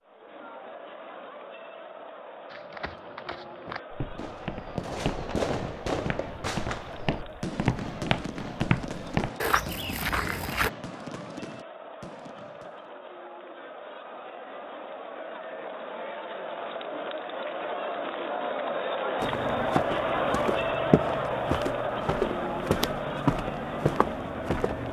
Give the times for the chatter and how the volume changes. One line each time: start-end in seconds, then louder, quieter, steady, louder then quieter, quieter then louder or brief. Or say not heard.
0.0-24.8 louder.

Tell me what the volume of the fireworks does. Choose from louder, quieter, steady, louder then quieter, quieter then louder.
quieter.